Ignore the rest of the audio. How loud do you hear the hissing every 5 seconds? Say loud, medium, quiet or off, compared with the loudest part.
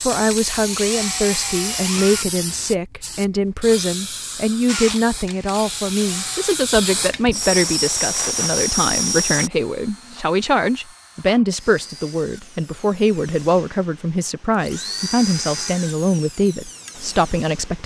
medium, loud, off, off.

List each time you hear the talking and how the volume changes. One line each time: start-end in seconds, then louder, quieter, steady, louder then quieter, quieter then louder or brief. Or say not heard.
0.0-17.8 steady.